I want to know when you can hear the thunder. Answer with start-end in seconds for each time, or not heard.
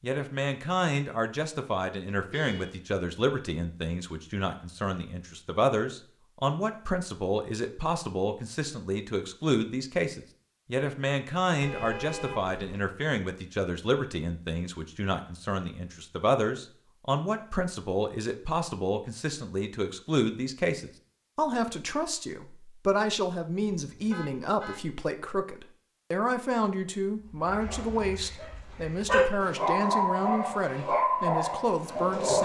not heard.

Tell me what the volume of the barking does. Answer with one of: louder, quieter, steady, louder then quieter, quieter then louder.
louder.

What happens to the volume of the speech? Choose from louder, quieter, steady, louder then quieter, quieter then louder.
steady.